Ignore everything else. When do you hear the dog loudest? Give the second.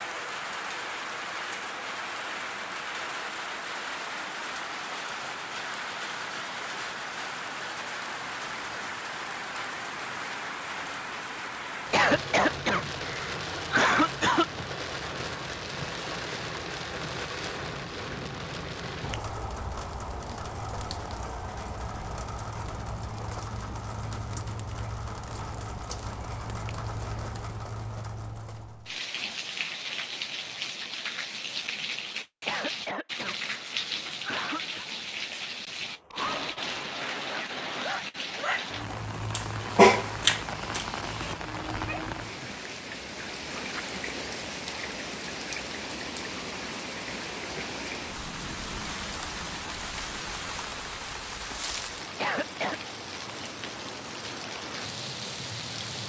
40 s.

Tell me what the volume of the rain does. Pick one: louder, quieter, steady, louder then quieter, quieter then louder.
steady.